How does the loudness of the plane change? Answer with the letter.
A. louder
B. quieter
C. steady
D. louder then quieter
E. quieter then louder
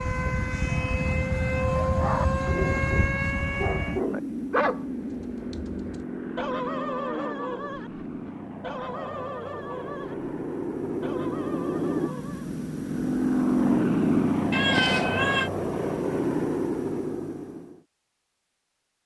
E.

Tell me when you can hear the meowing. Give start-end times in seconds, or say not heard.
14.5-15.5.